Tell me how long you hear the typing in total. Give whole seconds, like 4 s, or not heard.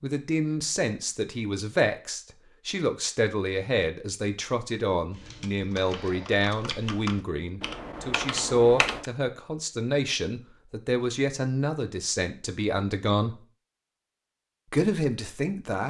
4 s.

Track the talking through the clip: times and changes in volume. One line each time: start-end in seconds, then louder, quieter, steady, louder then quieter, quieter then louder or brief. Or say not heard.
0.0-13.4 steady
14.7-15.8 brief.